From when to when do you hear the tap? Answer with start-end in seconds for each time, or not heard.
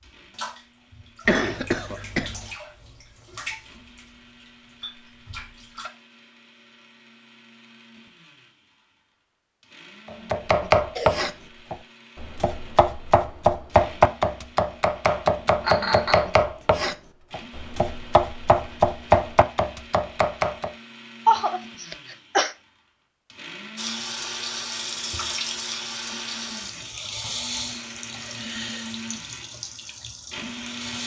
0.1-5.9, 23.8-31.0.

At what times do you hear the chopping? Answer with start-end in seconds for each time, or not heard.
10.1-20.7.